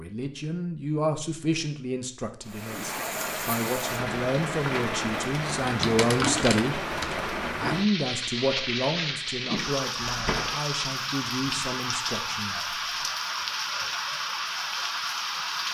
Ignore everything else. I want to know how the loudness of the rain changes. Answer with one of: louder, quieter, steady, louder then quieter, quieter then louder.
steady.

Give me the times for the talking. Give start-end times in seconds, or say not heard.
0.0-12.8.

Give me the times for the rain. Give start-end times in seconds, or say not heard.
2.5-15.7.